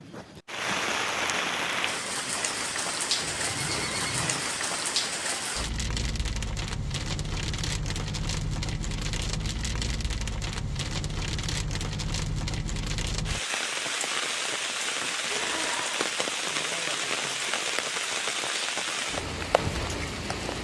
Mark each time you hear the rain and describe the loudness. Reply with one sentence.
The rain can be heard from 0.0 to 20.5 s, at a steady volume.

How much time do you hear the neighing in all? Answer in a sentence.
You can hear the neighing for 2 seconds altogether.